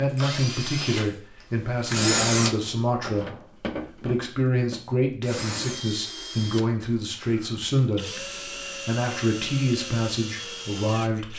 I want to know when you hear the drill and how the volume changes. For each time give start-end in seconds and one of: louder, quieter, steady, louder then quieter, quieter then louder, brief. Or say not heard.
0.0-11.3 quieter.